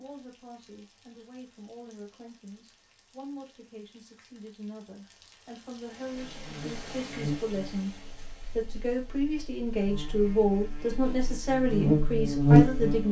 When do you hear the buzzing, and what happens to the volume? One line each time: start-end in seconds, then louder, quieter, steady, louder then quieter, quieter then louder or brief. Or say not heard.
6.2-13.0 quieter then louder.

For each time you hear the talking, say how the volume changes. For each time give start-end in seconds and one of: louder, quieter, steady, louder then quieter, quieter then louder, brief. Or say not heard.
0.0-13.0 louder.